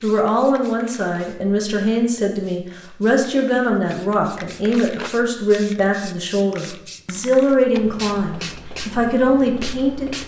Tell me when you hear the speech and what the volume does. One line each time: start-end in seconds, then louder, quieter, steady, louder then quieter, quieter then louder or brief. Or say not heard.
0.0-10.2 steady.